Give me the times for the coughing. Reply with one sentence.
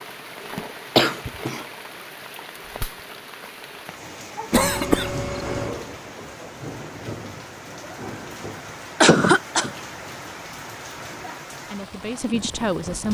You can hear the coughing from 0.9 to 1.6 s, from 4.5 to 5.8 s and from 9.0 to 9.7 s.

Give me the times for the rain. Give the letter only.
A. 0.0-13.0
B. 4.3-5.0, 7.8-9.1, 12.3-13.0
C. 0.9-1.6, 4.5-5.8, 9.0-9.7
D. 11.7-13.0
A.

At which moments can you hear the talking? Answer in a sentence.
You can hear the talking from 11.7 to 13.0 s.